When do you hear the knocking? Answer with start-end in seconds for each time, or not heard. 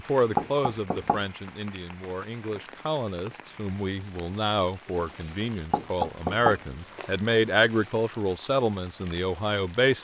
0.3-1.2, 5.7-7.2.